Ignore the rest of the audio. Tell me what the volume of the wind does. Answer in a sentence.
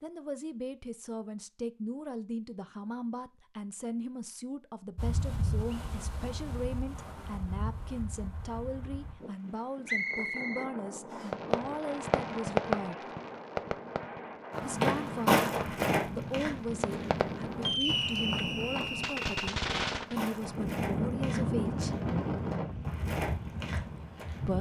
The loudness of the wind goes up.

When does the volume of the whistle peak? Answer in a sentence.
The loudest moment of the whistle is at 10 seconds.